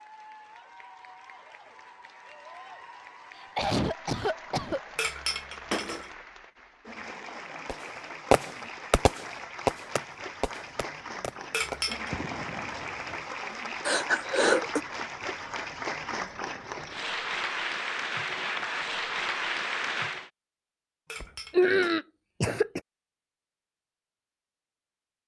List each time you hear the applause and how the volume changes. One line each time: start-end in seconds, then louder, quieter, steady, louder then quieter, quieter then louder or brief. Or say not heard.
0.0-20.3 louder.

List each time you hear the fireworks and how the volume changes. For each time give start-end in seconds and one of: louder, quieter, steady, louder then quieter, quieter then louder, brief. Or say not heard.
7.7-13.2 quieter.